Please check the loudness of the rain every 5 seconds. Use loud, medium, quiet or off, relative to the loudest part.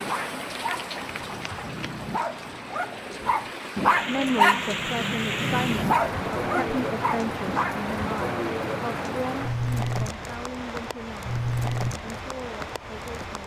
medium, loud, loud.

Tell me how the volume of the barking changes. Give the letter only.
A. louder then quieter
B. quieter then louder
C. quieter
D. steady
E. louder
A.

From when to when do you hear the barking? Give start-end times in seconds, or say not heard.
0.0-7.8.